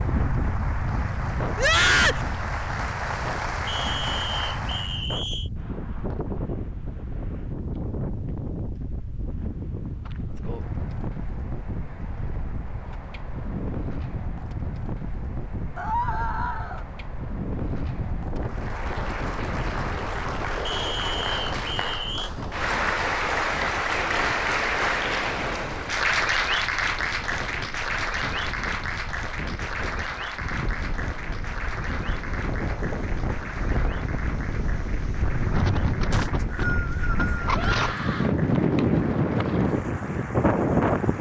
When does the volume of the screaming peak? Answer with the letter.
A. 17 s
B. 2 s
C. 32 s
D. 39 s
B.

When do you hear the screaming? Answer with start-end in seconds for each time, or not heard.
1.6-2.2, 15.8-16.9, 37.5-38.4.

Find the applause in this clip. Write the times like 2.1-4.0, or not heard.
0.0-5.0, 18.4-41.1.